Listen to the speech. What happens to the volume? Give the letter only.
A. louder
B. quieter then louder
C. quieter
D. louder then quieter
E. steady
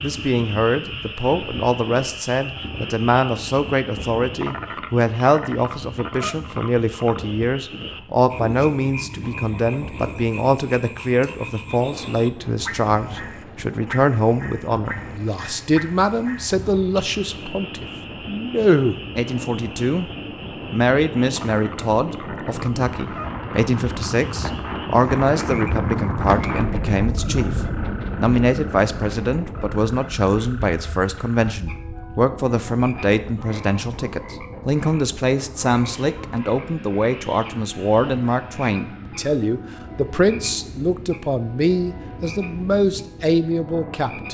E.